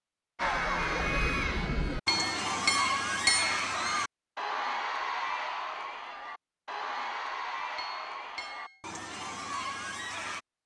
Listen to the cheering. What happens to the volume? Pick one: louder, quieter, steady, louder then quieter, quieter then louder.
quieter.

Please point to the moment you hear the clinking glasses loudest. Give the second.
3 s.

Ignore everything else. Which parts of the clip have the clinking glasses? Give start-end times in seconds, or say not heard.
2.0-3.7, 7.8-8.8.